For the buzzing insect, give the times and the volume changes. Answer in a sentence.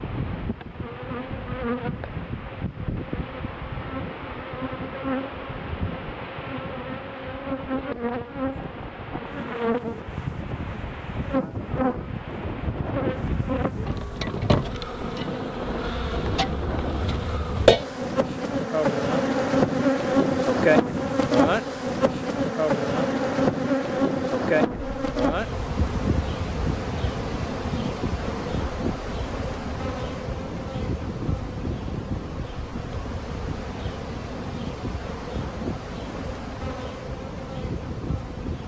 You can hear the buzzing insect from 0.0 to 38.6 s, getting louder then quieter.